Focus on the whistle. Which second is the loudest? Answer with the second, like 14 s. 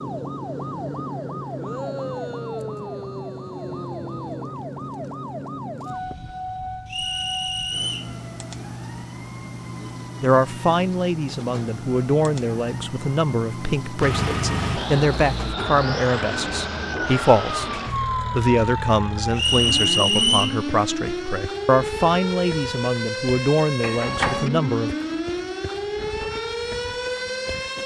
20 s.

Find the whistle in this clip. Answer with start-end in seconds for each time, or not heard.
6.8-8.1, 19.4-20.6.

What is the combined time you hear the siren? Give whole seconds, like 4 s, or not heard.
28 s.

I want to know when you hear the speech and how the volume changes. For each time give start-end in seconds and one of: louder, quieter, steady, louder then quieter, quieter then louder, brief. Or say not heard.
10.2-24.9 steady.